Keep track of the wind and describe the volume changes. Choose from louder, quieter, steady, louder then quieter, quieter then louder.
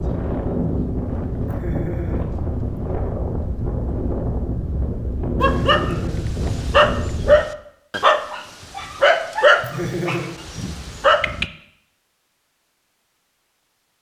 steady.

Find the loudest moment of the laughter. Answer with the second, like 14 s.
10 s.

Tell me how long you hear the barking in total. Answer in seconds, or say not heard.
6 s.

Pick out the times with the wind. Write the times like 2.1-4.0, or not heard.
0.0-7.4.